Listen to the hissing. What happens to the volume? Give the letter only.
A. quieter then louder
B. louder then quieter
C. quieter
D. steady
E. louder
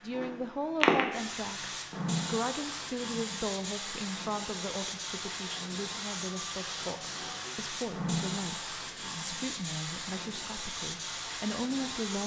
C.